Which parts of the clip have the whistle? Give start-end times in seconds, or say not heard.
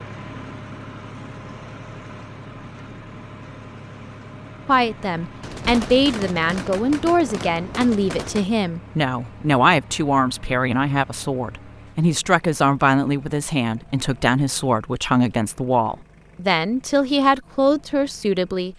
not heard.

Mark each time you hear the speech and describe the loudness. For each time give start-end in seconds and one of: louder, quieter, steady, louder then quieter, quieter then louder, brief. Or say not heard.
4.7-18.7 steady.